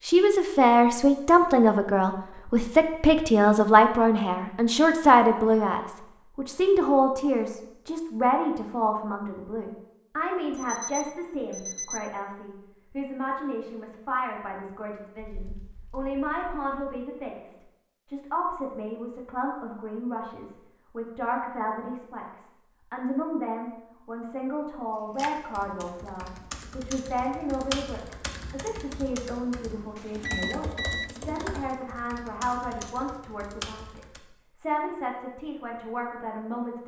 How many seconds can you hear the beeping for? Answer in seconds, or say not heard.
3 s.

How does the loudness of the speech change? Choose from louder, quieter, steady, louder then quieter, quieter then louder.
quieter.